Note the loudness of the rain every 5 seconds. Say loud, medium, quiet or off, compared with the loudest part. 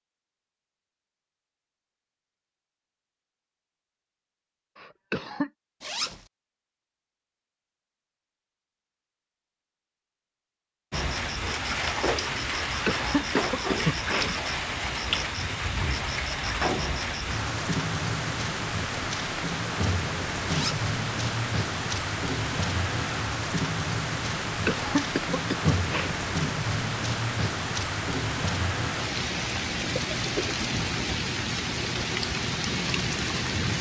off, off, loud, loud, loud, loud, loud.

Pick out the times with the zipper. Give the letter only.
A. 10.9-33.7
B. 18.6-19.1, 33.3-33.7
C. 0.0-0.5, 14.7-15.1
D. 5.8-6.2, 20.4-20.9
D.